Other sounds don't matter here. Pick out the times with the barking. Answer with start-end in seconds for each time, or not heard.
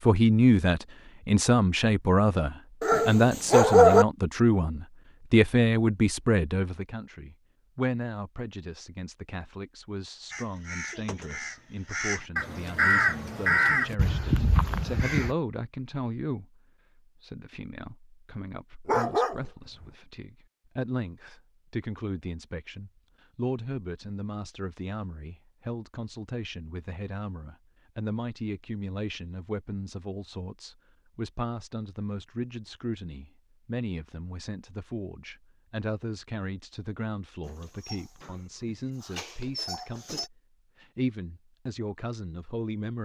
2.8-4.0, 18.9-19.9, 37.5-40.3.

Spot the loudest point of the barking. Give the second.
4 s.